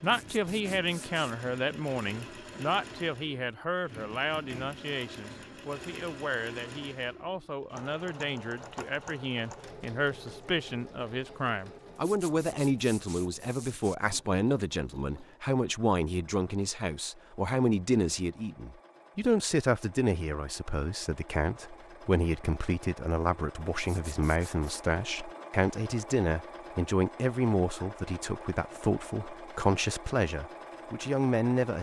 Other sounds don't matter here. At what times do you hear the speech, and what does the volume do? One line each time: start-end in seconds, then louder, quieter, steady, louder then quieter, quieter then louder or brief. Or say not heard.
0.0-31.7 steady.